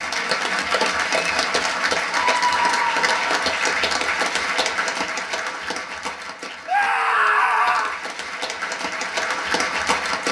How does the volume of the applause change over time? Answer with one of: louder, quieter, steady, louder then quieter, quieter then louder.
quieter then louder.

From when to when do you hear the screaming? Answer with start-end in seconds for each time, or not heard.
2.1-3.4, 6.7-8.0.